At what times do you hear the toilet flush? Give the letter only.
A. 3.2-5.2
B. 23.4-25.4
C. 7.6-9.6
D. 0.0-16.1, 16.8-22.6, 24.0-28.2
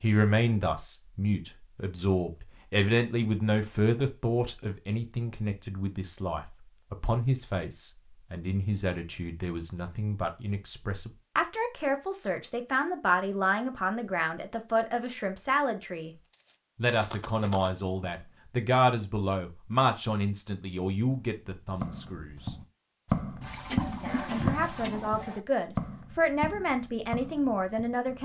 B.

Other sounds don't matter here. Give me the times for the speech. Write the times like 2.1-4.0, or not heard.
0.0-16.1, 16.8-22.6, 24.0-28.2.